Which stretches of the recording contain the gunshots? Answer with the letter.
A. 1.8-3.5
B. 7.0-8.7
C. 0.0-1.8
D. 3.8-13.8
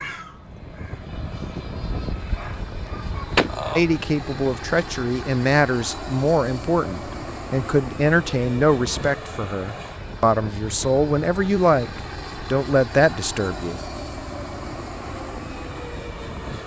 A.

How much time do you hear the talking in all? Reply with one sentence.
The talking can be heard for 10 seconds in total.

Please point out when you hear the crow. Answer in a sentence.
You can hear the crow from 0.0 to 1.8 s.